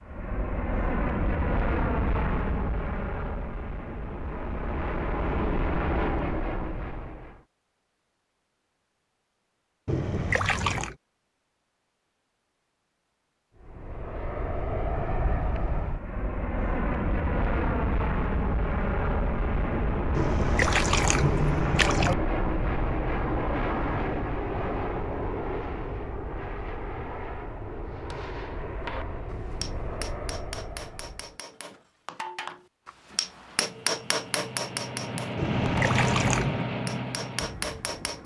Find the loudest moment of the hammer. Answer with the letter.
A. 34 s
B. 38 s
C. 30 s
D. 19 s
A.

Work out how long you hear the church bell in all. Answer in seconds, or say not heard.
not heard.